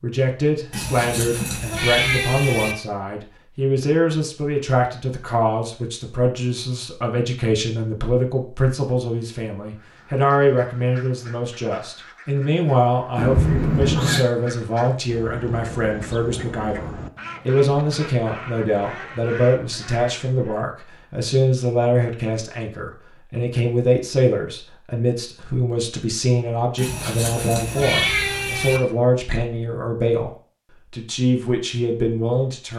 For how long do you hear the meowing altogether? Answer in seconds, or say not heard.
5 s.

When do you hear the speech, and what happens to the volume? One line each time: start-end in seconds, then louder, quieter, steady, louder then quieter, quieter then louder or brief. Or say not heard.
0.0-30.3 steady
30.9-32.7 brief.